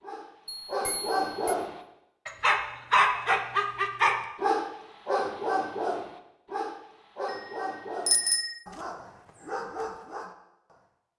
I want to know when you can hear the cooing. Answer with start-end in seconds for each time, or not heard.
not heard.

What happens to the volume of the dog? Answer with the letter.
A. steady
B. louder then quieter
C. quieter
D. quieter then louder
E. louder
B.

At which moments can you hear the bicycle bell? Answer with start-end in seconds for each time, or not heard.
0.5-1.6, 8.1-8.6.